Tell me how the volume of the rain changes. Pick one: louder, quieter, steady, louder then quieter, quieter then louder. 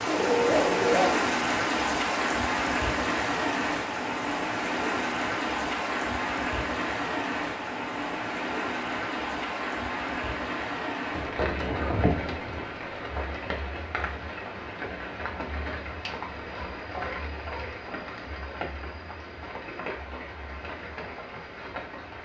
quieter.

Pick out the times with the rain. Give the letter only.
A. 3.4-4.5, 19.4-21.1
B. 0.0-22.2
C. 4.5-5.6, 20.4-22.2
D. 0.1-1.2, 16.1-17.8
B.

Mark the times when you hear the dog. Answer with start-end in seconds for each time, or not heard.
0.1-1.2, 16.1-17.8.